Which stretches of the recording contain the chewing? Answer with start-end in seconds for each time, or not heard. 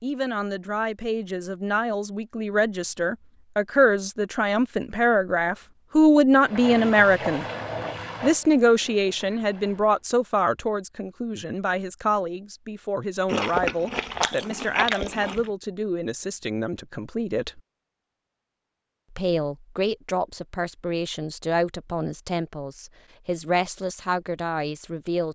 13.2-15.5.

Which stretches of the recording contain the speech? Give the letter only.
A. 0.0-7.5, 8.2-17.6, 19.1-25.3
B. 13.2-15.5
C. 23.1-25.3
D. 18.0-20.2
A.